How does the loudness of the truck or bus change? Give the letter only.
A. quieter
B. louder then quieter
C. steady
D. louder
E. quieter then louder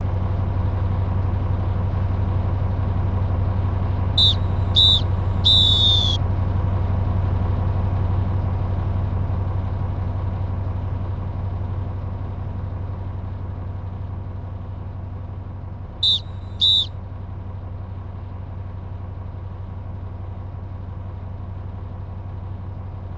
A.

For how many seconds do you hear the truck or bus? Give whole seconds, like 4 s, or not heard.
23 s.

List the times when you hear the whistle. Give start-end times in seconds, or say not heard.
4.2-6.2, 16.0-16.9.